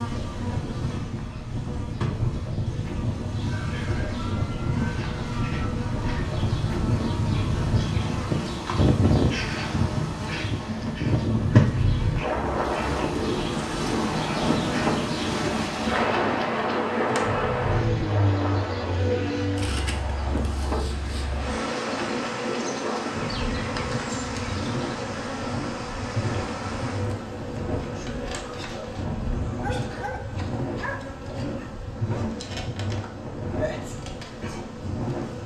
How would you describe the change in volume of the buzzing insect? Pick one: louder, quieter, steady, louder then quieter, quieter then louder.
louder then quieter.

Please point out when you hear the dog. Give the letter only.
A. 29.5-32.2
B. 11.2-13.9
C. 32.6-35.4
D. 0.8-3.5
A.